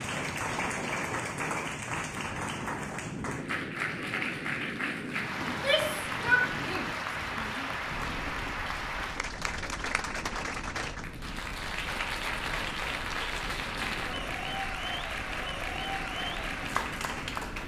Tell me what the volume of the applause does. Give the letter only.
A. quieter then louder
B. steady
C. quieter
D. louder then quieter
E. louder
B.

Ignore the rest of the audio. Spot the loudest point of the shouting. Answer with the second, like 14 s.
6 s.